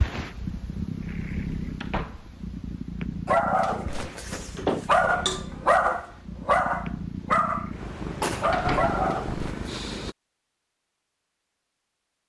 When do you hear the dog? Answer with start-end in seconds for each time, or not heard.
3.2-9.7.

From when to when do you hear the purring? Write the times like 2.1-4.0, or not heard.
0.0-10.2.